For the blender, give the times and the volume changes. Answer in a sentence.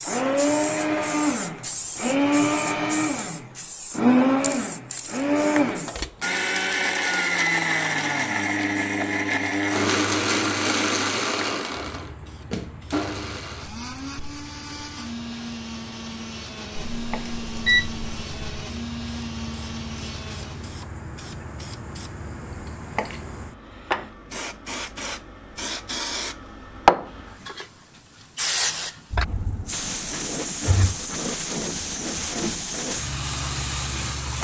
You can hear the blender from 0.0 to 20.8 s, getting quieter.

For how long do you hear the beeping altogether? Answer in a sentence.
The beeping can be heard for 2 seconds in total.